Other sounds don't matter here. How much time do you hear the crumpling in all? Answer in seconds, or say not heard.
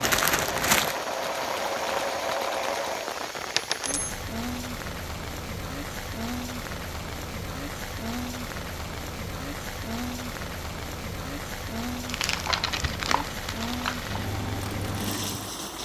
3 s.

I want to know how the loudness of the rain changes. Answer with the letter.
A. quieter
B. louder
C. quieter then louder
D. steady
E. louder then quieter
D.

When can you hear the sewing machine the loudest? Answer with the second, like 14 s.
2 s.